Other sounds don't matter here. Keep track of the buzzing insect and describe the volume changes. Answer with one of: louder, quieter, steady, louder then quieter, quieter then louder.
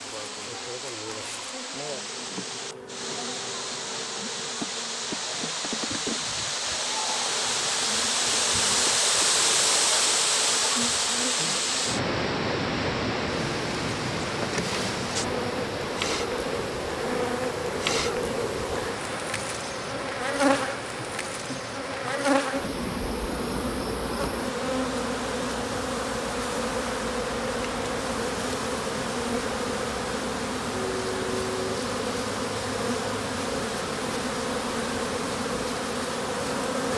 louder.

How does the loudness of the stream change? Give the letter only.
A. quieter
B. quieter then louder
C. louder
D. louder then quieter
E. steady
D.